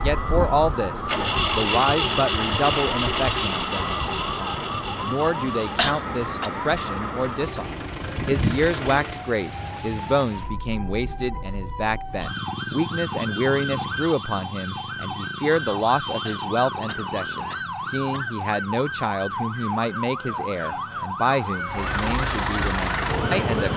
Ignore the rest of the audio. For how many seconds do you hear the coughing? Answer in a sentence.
The coughing can be heard for 3 seconds in total.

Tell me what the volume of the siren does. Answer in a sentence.
The loudness of the siren stays about the same.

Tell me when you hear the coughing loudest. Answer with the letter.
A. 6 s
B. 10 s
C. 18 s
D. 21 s
A.